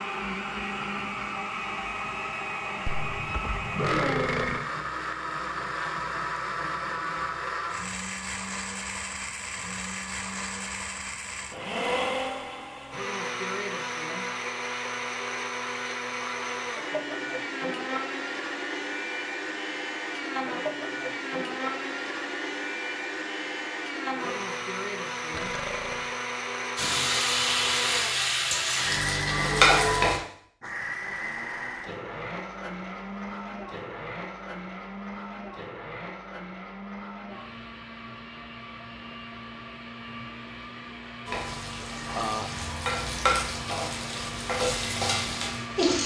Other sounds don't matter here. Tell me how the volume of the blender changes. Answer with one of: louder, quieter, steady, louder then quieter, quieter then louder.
quieter.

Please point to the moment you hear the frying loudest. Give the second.
30 s.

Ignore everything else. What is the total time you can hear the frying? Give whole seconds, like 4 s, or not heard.
8 s.